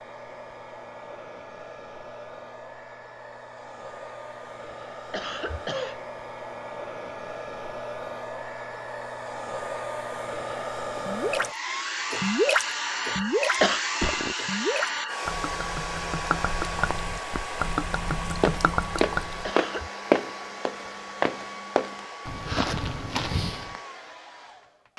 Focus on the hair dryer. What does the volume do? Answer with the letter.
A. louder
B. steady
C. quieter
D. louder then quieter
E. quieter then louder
D.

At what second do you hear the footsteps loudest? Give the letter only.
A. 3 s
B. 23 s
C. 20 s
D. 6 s
C.